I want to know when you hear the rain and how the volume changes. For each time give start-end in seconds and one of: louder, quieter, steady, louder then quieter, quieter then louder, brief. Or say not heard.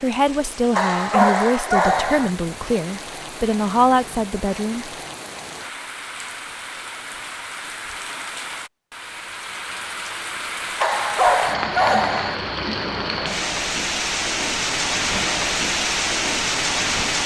0.0-17.2 louder.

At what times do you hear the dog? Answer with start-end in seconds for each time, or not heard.
0.8-2.3, 10.8-12.3.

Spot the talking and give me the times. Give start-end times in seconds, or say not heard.
0.0-4.9.